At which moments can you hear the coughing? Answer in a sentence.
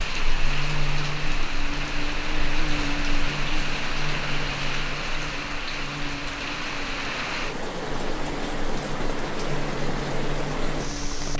The coughing can't be heard in this clip.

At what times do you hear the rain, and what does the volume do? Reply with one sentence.
The rain can be heard from 0.0 to 11.3 s, at a steady volume.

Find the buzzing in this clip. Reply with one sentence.
The buzzing can be heard from 0.1 to 11.3 s.